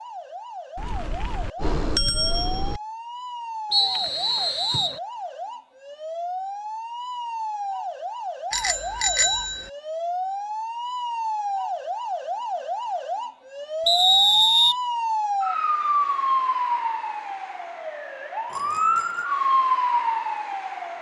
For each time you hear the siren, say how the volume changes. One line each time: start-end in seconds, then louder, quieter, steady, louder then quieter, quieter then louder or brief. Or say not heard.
0.0-20.9 louder.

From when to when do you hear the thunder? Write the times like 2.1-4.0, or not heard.
not heard.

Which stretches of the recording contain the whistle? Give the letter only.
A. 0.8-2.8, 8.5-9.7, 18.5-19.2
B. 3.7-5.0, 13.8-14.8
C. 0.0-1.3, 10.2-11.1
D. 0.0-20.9
B.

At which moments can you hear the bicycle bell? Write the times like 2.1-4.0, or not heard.
0.8-2.8, 8.5-9.7, 18.5-19.2.